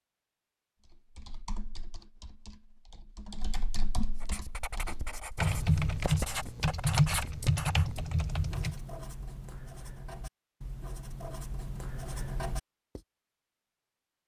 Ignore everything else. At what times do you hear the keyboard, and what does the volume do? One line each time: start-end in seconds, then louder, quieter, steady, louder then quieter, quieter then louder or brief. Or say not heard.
0.8-8.8 louder.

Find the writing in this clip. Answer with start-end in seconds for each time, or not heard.
4.2-13.0.